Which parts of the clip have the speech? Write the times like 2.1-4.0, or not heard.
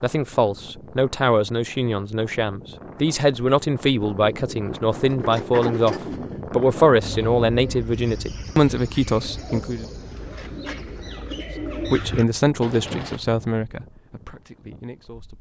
0.0-9.8, 11.9-15.3.